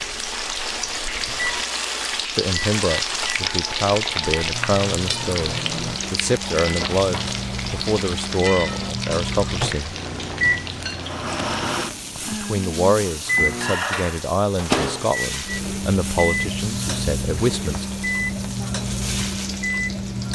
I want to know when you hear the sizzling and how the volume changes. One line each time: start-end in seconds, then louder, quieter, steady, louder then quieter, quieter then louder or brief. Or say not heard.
0.0-20.3 quieter.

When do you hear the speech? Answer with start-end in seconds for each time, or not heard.
2.4-9.9, 12.3-17.9.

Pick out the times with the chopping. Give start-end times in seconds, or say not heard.
not heard.